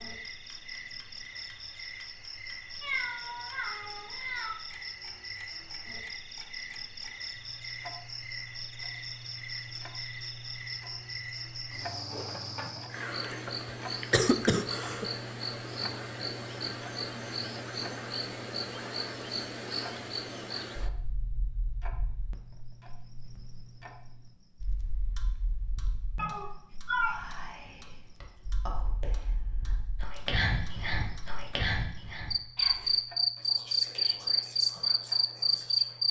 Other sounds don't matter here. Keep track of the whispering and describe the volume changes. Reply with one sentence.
The loudness of the whispering goes up, then down.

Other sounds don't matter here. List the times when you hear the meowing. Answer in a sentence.
The meowing can be heard from 2.8 to 4.5 s and from 26.1 to 27.1 s.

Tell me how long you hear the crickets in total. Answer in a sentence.
You can hear the crickets for 36 seconds altogether.